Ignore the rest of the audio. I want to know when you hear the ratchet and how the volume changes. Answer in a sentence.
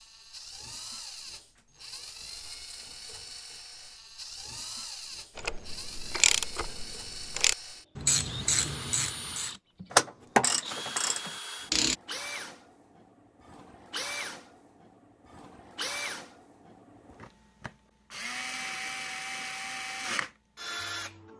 You can hear the ratchet from 5.3 to 11.9 s, getting louder then quieter.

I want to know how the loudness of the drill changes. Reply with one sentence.
The volume of the drill goes up.